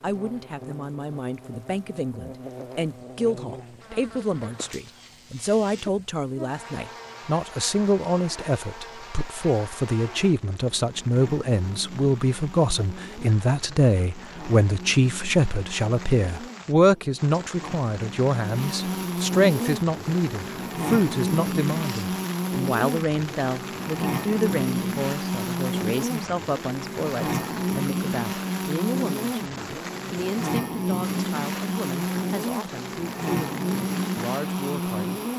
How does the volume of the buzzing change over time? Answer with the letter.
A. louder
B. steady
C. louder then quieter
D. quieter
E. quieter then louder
A.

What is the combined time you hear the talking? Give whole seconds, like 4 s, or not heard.
35 s.